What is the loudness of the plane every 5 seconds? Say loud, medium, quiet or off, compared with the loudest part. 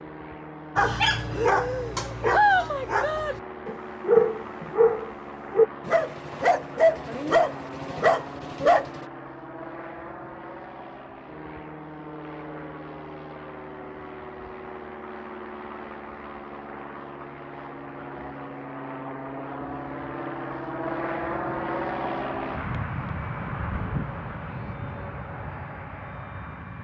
medium, medium, medium, medium, loud, medium.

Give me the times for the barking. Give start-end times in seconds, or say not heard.
0.8-9.0.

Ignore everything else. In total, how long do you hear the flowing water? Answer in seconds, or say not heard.
not heard.